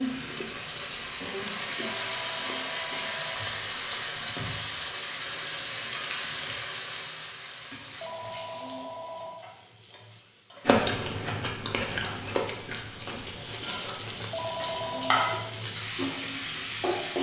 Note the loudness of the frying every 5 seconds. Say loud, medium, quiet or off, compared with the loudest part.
loud, medium, medium, loud.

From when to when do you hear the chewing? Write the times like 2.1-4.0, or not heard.
0.2-4.3, 10.7-17.1.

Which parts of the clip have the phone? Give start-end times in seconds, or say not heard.
1.8-3.5, 8.0-9.4, 14.3-15.5.